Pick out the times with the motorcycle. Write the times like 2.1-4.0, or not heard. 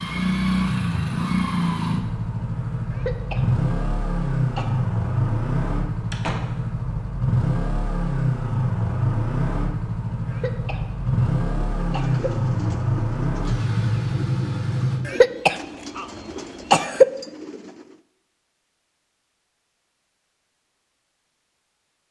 0.0-15.1.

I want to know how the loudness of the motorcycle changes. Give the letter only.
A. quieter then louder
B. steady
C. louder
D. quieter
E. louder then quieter
B.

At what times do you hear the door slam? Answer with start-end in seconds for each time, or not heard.
6.1-6.7.